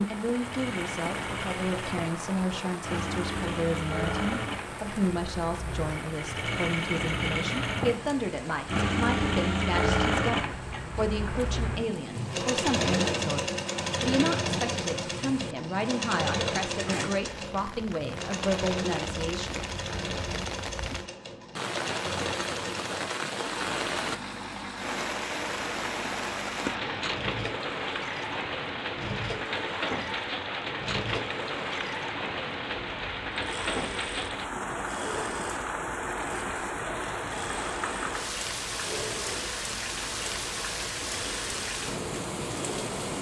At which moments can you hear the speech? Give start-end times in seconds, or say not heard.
0.0-19.6.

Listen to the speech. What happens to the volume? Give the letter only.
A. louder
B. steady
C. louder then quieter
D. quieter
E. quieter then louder
B.